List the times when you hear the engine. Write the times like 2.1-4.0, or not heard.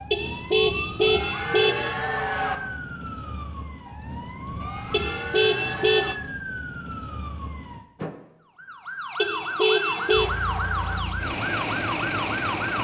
10.1-12.7.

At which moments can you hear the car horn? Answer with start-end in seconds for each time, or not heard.
0.1-1.9, 4.9-6.2, 9.2-10.3.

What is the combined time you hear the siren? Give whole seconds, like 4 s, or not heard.
13 s.